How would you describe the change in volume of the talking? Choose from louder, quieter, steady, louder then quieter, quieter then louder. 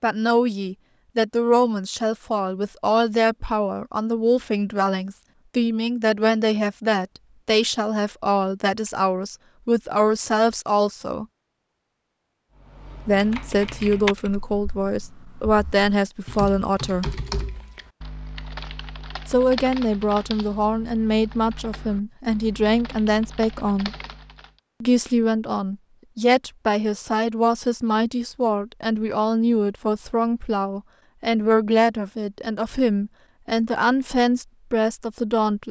steady.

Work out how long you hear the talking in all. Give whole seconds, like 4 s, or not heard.
31 s.